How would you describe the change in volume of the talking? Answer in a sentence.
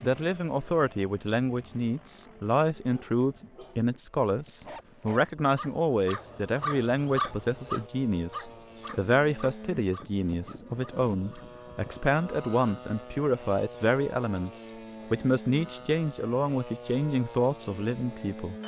The loudness of the talking stays about the same.